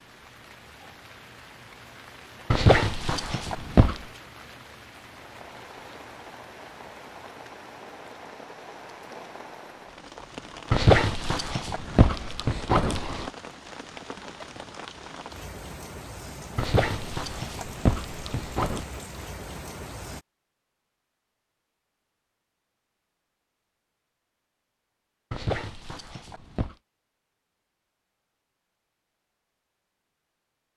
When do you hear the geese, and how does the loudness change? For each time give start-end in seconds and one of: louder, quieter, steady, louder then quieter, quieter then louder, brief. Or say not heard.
not heard.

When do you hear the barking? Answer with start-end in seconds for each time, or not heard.
2.5-4.0, 10.7-13.3, 16.6-18.9, 25.3-26.8.